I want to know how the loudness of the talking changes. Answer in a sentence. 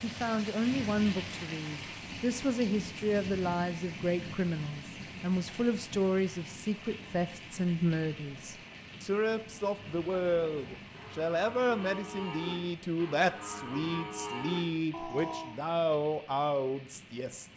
The loudness of the talking stays about the same.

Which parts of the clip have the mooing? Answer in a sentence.
The mooing can be heard from 10.1 to 15.6 s.